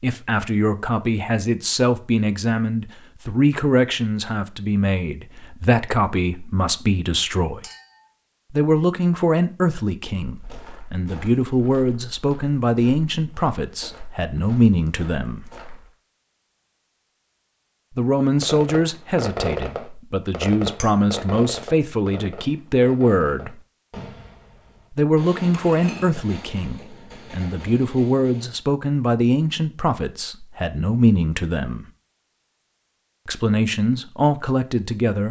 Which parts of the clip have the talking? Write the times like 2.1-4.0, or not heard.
0.0-7.6, 8.5-15.4, 17.9-23.6, 24.9-31.9, 33.2-35.2.